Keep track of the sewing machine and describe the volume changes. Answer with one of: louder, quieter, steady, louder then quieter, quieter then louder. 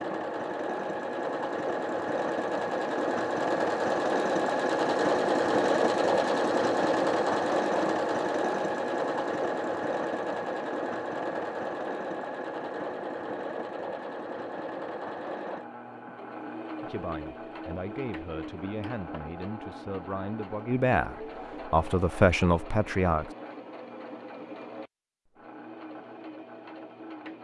quieter.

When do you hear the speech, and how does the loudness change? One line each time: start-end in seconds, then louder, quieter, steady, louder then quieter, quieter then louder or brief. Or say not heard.
16.8-23.3 louder.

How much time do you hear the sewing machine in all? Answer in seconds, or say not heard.
27 s.